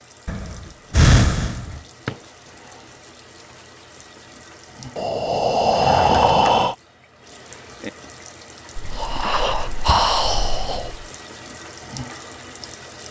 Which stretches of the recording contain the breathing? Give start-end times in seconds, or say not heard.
0.2-1.8, 5.0-6.8, 8.8-11.1.